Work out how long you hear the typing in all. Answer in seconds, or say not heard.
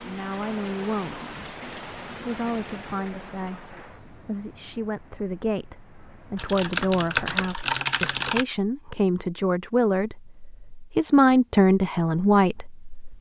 2 s.